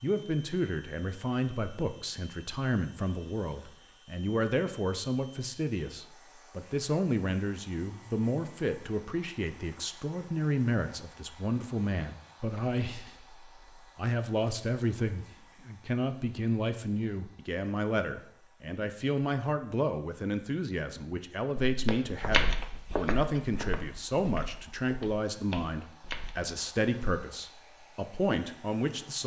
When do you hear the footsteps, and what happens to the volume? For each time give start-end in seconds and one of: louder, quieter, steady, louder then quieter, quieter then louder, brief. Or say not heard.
21.6-26.6 quieter then louder.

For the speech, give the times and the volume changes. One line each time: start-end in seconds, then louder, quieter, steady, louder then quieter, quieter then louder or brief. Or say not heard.
0.0-29.2 steady.